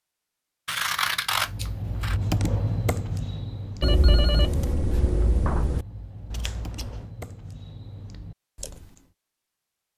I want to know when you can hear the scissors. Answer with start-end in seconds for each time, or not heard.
0.7-2.1, 6.3-7.1.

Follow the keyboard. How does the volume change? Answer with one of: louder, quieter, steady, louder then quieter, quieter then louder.
quieter.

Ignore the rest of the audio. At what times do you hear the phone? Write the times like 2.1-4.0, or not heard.
3.8-5.8.